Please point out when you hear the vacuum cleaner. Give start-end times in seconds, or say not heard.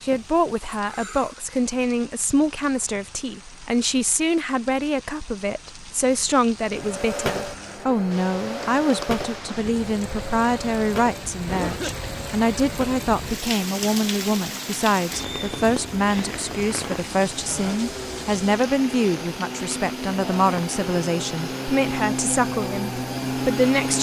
6.7-23.9.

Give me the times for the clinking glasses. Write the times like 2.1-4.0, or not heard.
not heard.